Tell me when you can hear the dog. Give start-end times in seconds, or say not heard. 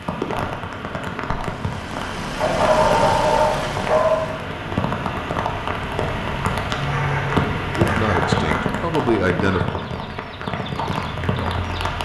2.4-4.3, 6.8-8.7.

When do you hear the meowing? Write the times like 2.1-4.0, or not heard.
not heard.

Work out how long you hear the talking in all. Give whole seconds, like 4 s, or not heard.
2 s.